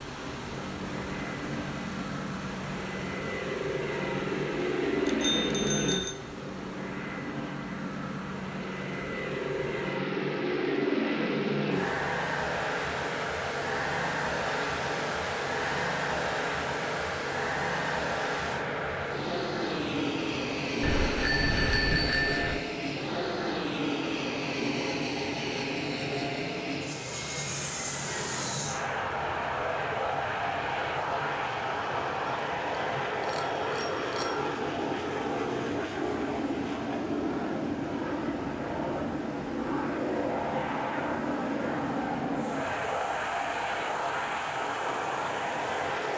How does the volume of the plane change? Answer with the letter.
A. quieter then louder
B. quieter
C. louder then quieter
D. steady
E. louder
D.